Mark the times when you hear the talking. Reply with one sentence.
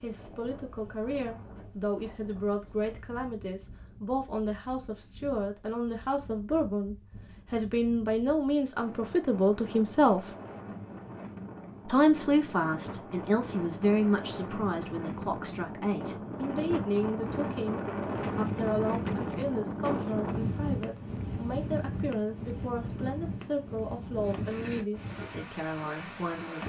The talking can be heard from 0.0 to 10.3 s and from 11.8 to 26.6 s.